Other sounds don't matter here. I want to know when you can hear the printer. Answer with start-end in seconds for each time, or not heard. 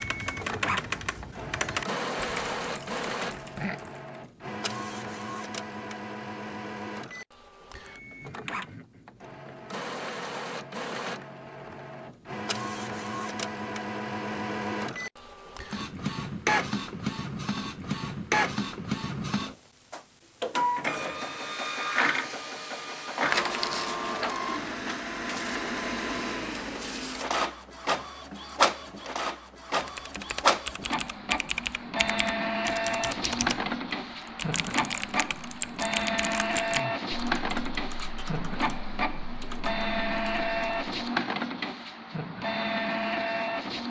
0.0-43.8.